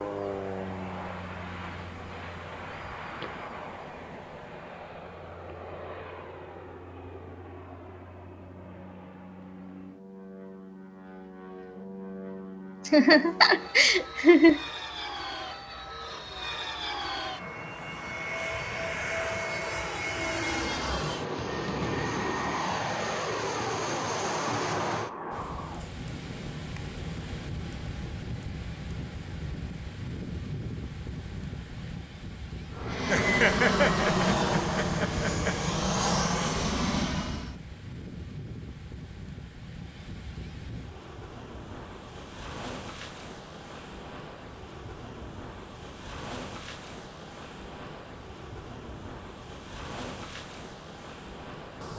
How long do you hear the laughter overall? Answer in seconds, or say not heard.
4 s.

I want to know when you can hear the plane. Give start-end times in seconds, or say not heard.
0.0-25.9, 32.7-37.5.